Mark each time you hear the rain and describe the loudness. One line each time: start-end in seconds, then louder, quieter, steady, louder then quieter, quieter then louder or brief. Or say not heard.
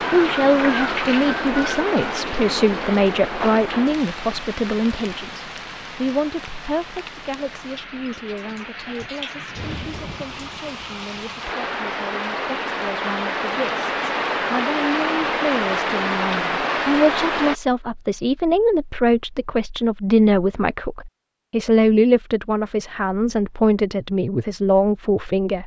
0.0-17.6 quieter then louder.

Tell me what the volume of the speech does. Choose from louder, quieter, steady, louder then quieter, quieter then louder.
quieter then louder.